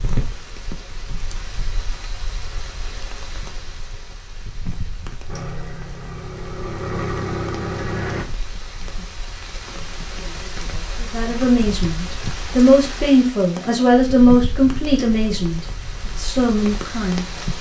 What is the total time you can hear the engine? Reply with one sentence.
You can hear the engine for 3 seconds altogether.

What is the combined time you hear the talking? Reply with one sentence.
You can hear the talking for 6 seconds altogether.